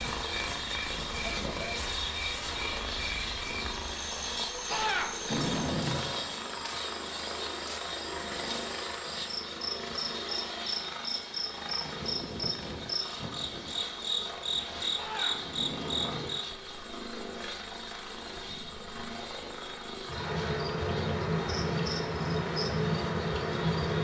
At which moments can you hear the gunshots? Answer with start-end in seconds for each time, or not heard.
4.7-6.2, 14.9-16.6.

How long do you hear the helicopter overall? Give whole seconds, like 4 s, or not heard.
24 s.